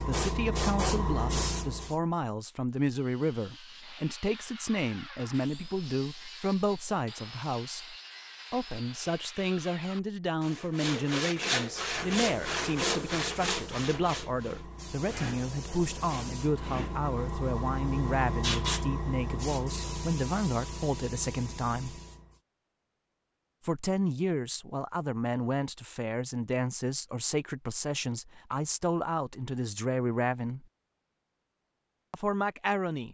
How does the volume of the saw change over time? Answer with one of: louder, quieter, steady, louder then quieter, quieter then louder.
louder.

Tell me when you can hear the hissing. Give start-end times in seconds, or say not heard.
0.0-2.0, 11.6-22.4.